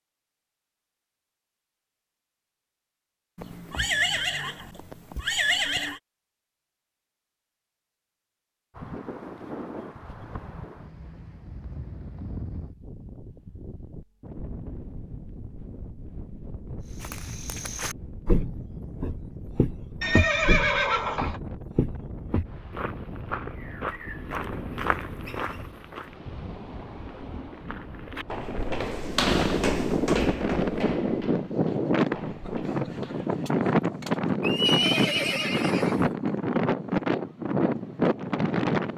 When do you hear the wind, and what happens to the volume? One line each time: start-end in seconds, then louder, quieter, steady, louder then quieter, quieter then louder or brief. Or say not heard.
8.7-38.9 louder.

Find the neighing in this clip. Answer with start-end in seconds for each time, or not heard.
3.4-6.0, 20.0-21.4, 34.4-36.1.